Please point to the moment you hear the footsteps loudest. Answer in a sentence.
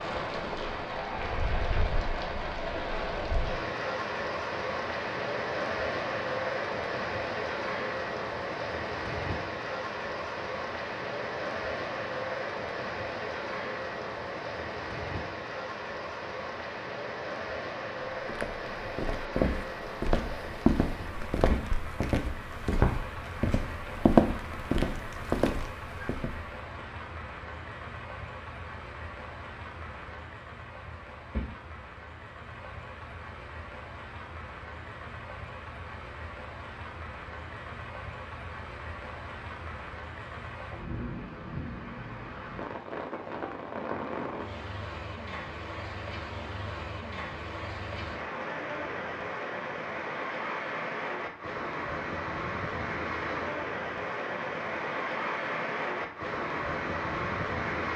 The loudest moment of the footsteps is at 24 seconds.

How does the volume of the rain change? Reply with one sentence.
The loudness of the rain goes down, then up.